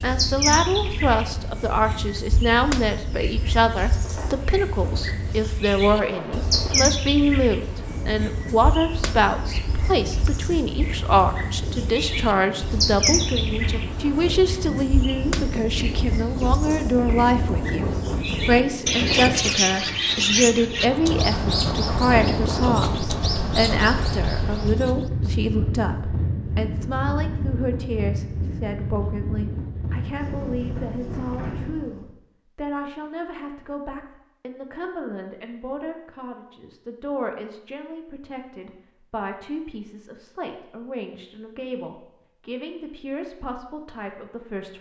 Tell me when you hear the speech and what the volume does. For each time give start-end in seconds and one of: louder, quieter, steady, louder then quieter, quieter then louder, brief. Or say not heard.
0.0-44.7 quieter.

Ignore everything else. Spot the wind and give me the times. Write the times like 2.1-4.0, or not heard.
0.0-32.1.